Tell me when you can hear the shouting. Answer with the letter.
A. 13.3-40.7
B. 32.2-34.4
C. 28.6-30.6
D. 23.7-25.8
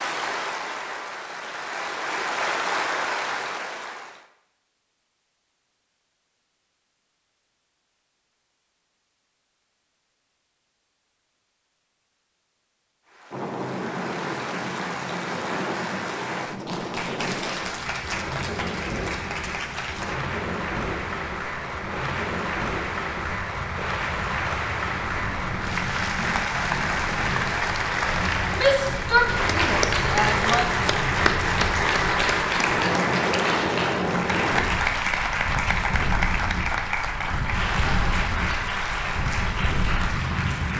C.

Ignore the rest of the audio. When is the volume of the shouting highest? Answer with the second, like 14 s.
29 s.